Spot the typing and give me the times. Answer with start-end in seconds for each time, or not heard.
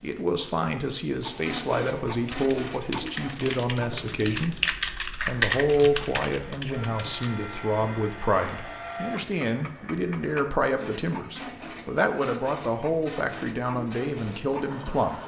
2.3-7.2.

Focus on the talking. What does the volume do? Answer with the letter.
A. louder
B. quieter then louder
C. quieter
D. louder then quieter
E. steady
E.